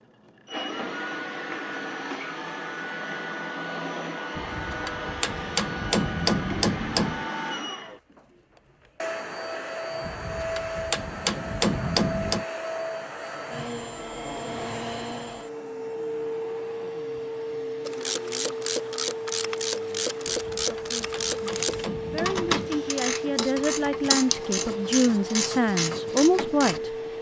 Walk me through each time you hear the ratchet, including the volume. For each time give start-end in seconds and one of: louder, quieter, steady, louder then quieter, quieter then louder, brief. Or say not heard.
17.8-26.8 steady.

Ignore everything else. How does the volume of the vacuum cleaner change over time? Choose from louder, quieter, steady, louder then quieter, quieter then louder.
steady.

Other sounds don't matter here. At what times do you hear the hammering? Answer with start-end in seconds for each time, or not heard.
4.3-7.2, 10.0-12.4, 20.2-22.7.